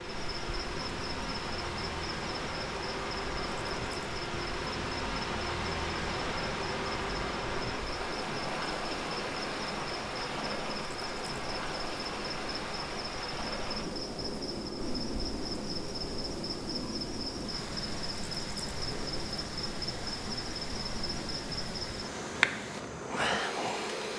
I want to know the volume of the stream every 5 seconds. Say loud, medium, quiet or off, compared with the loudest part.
loud, loud, loud, medium, medium.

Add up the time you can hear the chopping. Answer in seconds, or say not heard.
not heard.